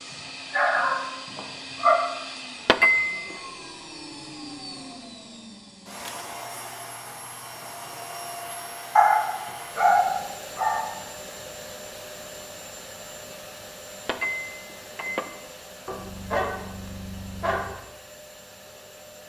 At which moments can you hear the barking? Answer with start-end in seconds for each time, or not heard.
0.5-1.9, 8.9-10.9, 15.8-17.6.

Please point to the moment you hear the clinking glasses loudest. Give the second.
3 s.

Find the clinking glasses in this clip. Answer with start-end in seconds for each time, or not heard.
2.6-3.4, 14.1-15.3.